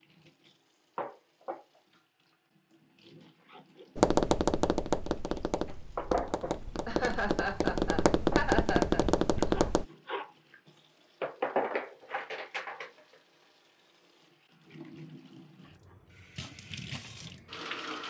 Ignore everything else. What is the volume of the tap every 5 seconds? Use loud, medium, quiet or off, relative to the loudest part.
medium, loud, loud, medium.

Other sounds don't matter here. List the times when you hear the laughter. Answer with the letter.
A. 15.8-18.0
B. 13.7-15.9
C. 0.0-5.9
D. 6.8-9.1
D.